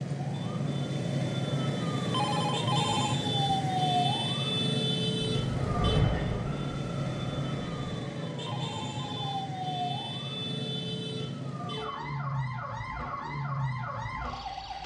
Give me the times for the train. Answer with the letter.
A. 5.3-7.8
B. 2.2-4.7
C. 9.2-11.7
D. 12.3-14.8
A.